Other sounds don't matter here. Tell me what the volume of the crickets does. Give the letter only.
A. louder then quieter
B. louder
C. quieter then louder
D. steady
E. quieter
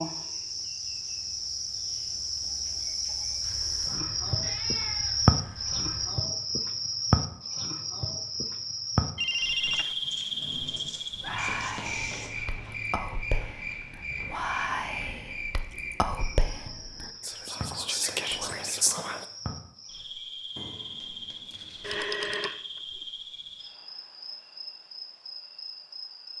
E.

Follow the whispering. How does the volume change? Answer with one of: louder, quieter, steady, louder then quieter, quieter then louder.
louder.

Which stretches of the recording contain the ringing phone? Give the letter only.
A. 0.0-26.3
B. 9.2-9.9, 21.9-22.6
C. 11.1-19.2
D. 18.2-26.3
B.